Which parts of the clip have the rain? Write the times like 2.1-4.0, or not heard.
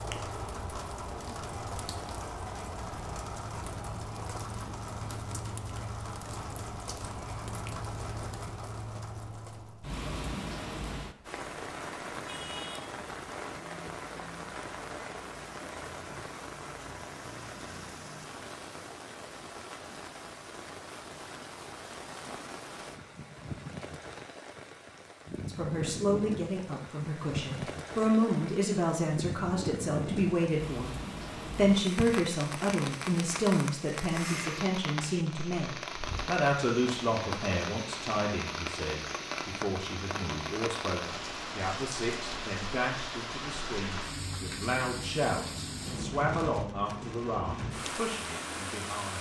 0.0-49.1.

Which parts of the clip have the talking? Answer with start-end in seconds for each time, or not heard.
25.4-30.9, 31.6-49.1.